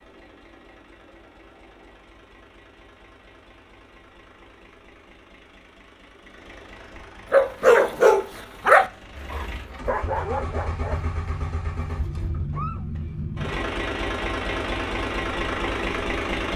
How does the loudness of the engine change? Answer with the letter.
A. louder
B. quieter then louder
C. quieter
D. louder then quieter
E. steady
A.